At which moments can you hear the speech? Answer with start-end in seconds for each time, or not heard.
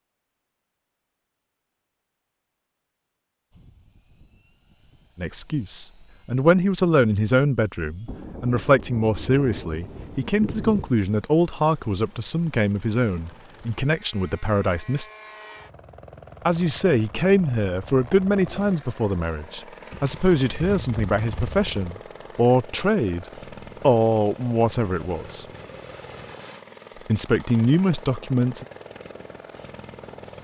5.2-15.1, 16.4-25.4, 27.1-28.6.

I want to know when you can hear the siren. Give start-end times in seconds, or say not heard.
not heard.